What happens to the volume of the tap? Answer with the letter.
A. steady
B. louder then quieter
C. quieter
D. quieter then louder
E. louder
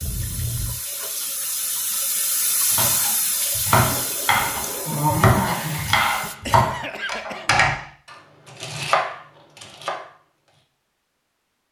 B.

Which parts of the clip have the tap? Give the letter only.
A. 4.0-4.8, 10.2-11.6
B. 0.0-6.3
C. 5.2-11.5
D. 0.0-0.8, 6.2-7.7
B.